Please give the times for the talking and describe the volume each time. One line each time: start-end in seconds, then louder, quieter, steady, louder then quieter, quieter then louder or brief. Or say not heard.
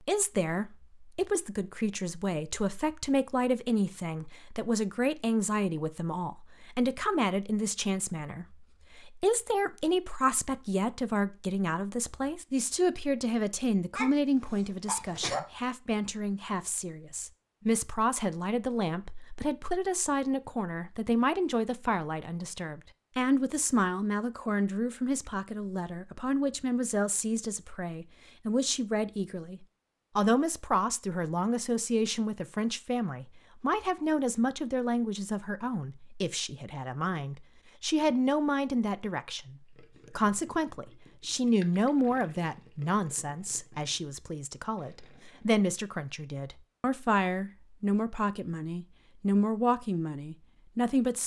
0.0-51.2 steady.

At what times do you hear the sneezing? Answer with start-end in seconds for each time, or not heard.
13.9-15.4.